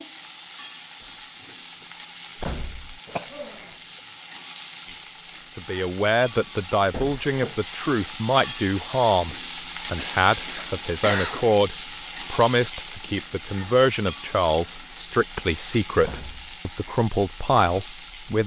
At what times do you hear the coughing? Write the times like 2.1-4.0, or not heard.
3.0-3.8, 9.9-11.4.